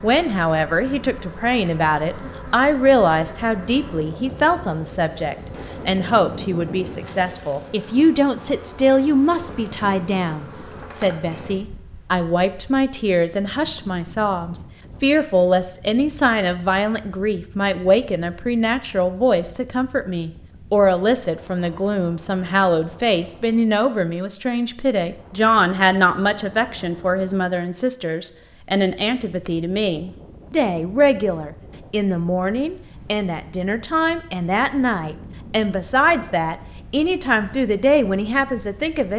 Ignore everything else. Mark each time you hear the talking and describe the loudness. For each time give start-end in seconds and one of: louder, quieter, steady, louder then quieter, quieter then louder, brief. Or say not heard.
0.0-39.1 steady.